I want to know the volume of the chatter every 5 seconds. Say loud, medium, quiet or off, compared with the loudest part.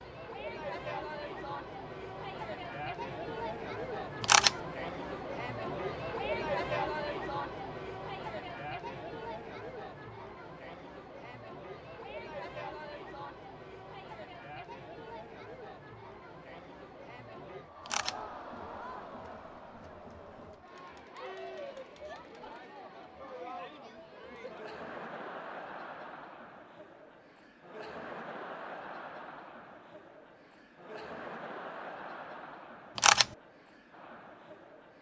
loud, loud, medium, medium, medium, medium, medium.